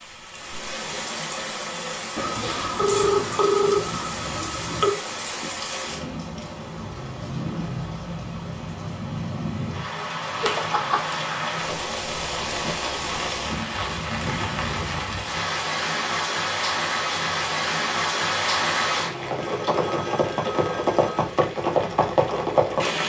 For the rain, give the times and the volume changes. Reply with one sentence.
You can hear the rain from 0.0 to 23.0 s, getting louder.